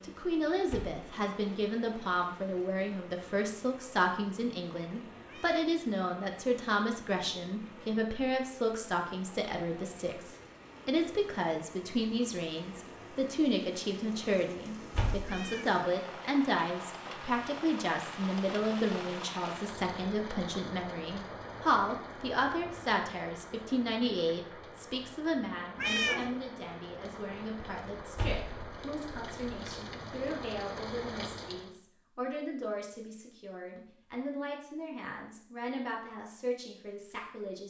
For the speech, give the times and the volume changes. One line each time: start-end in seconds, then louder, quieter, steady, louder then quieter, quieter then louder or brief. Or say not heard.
0.0-37.6 quieter.